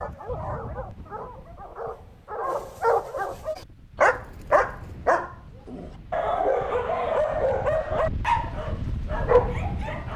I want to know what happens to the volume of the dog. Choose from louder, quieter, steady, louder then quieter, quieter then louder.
louder.